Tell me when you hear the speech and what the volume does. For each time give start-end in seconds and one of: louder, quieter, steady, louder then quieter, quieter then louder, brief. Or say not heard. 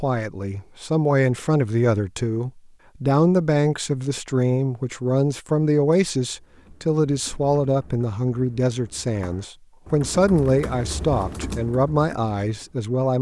0.0-13.1 steady.